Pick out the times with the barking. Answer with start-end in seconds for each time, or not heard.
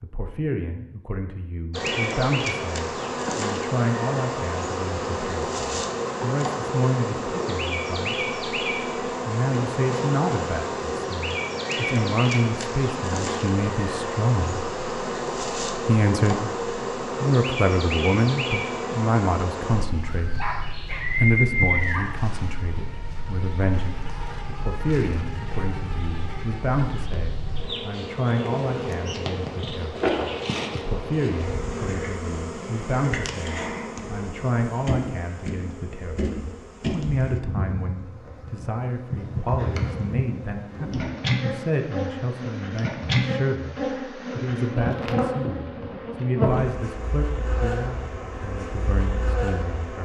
20.1-22.1.